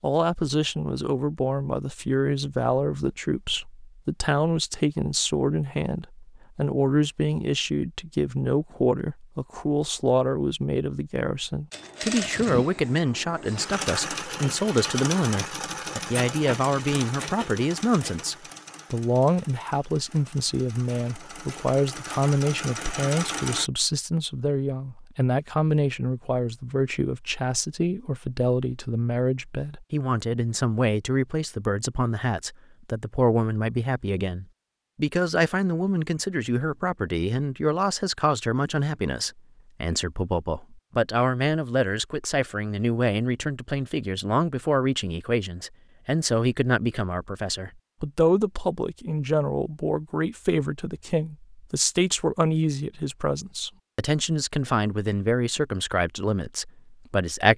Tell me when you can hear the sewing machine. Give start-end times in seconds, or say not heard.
11.7-23.7.